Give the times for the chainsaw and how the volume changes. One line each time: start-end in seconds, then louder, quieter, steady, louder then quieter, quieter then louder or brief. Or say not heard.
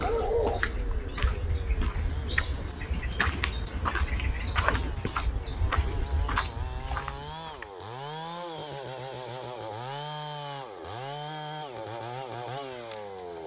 0.0-13.4 louder.